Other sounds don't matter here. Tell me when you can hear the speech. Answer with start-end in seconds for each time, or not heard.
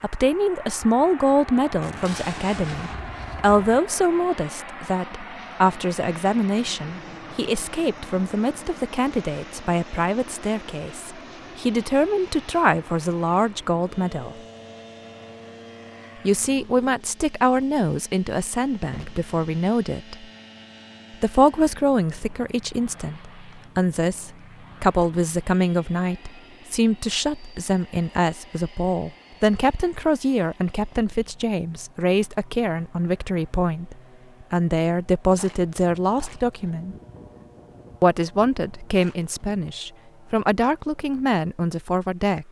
0.0-14.4, 16.2-20.2, 21.1-37.0, 38.0-42.4.